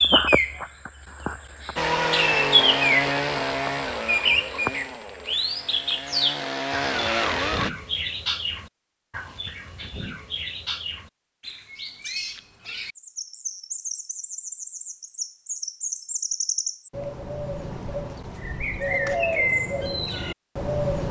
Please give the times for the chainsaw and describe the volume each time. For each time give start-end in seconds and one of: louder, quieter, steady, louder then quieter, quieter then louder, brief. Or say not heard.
1.8-7.7 quieter then louder.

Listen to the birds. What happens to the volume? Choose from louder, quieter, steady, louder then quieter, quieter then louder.
quieter then louder.